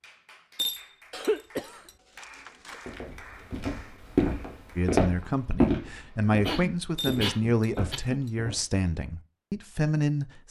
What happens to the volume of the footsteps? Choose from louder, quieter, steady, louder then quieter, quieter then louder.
quieter.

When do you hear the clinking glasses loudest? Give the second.
1 s.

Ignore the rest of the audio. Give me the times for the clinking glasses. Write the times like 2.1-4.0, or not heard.
0.6-1.9, 7.0-8.3.